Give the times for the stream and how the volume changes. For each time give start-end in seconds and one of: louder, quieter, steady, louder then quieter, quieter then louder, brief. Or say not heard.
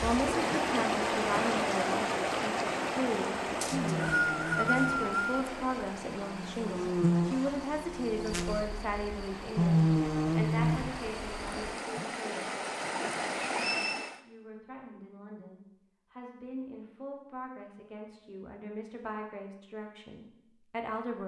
0.0-14.2 quieter then louder.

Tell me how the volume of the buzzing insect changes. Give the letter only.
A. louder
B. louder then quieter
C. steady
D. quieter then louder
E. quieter
A.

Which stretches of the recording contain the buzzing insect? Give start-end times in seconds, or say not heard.
3.6-11.8.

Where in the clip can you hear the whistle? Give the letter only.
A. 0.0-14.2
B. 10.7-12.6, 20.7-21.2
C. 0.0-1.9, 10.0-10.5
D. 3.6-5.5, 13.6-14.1
D.